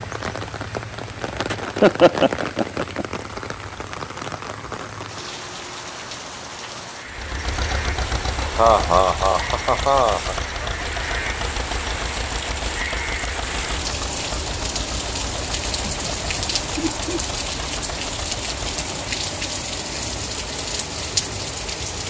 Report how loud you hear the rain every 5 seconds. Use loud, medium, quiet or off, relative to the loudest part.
loud, medium, loud, loud, loud.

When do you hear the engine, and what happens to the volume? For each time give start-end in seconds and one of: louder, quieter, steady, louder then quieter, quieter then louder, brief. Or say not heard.
7.0-19.0 quieter.